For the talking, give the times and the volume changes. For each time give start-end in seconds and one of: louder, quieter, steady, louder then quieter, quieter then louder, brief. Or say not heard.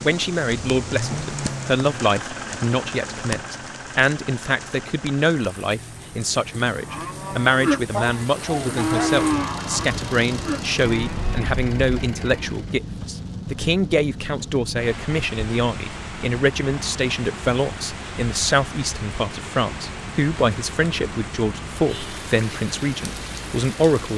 0.0-24.1 steady.